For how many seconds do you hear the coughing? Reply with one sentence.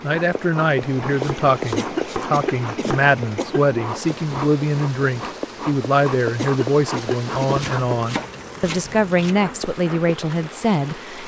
You can hear the coughing for 3 seconds altogether.